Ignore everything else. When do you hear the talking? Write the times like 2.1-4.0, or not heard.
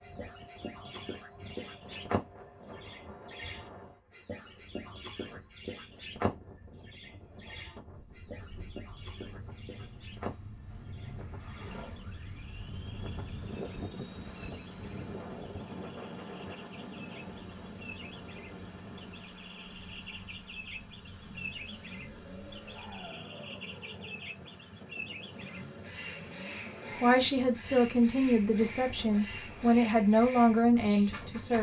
27.0-31.5.